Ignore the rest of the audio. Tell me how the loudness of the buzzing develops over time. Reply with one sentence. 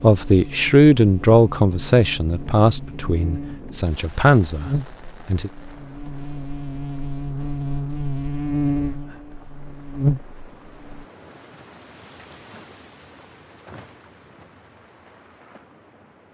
The loudness of the buzzing goes up.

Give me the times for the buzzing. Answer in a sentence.
You can hear the buzzing from 0.0 to 11.1 s.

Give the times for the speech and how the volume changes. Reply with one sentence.
The speech can be heard from 0.0 to 5.5 s, getting quieter then louder.